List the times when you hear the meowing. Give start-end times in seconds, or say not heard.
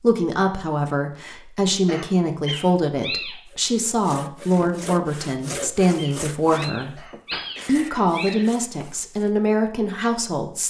2.5-3.4, 6.0-8.4.